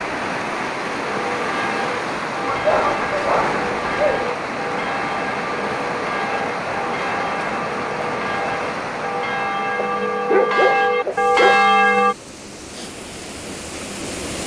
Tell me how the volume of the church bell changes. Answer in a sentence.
The volume of the church bell goes up.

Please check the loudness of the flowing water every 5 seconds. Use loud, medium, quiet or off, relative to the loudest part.
loud, loud, medium.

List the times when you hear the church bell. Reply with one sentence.
You can hear the church bell from 1.0 to 12.2 s.